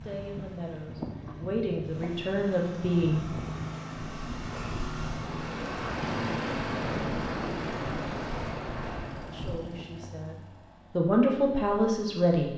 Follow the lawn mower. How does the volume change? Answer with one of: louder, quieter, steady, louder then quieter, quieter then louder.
louder then quieter.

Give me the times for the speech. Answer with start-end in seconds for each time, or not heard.
0.0-3.4, 9.3-12.5.